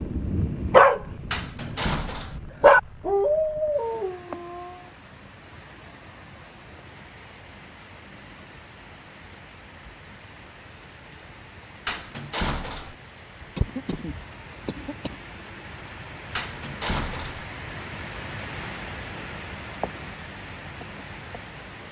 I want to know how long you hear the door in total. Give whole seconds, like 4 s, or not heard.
3 s.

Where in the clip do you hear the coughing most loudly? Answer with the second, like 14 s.
14 s.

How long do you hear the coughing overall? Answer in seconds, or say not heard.
2 s.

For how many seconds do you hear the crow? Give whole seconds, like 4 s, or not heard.
not heard.